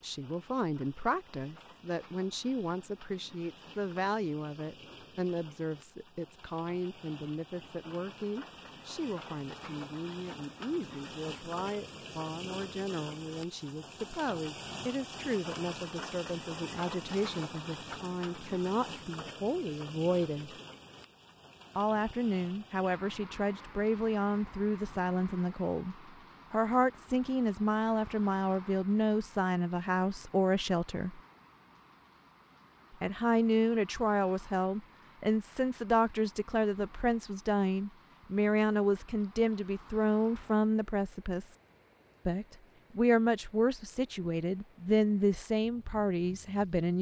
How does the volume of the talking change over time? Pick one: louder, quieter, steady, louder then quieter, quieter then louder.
louder.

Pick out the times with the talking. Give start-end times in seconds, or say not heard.
0.0-20.6, 21.8-31.2, 33.0-41.5, 42.2-46.9.